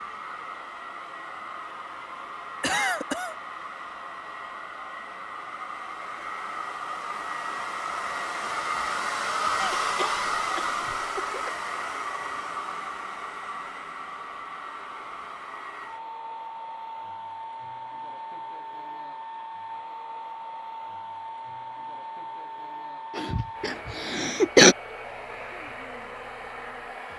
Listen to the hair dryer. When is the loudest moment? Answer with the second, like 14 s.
10 s.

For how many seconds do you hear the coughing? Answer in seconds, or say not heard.
4 s.